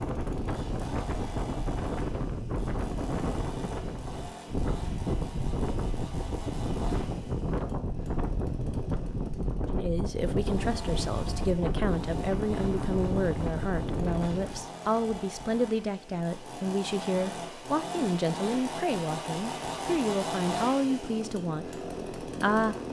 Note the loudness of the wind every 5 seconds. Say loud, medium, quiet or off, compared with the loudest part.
loud, loud, loud, off, off.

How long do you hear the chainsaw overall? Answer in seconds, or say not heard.
23 s.